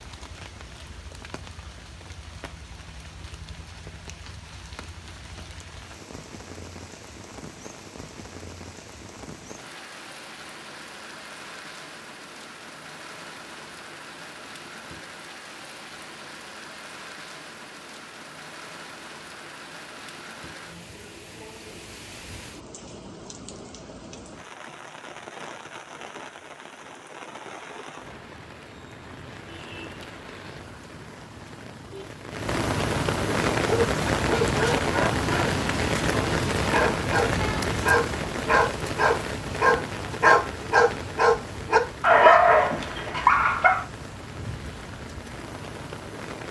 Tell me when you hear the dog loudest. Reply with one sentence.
The volume of the dog peaks at 42 seconds.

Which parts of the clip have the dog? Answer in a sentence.
You can hear the dog from 33.6 to 43.9 s.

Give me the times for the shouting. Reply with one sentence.
The shouting can't be heard in this clip.